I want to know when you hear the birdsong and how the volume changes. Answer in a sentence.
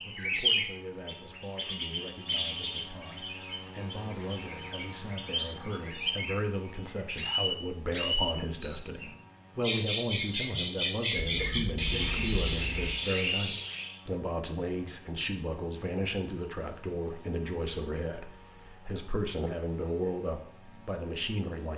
You can hear the birdsong from 0.0 to 13.9 s, getting quieter then louder.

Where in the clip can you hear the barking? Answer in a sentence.
You can't hear the barking here.